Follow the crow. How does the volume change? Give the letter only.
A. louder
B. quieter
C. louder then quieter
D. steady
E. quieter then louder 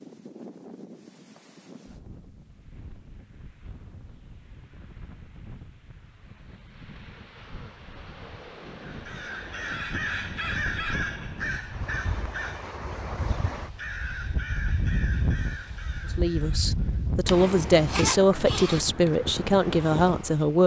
B.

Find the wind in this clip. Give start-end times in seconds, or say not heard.
0.0-20.6.